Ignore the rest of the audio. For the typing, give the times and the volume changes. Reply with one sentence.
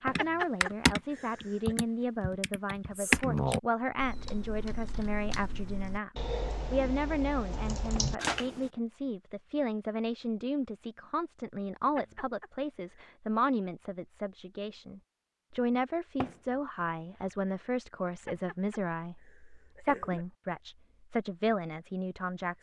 The typing can be heard from 0.1 to 8.7 s, getting quieter then louder.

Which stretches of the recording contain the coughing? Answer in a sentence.
The coughing can be heard from 0.1 to 1.8 s, from 11.9 to 13.1 s and from 18.2 to 20.2 s.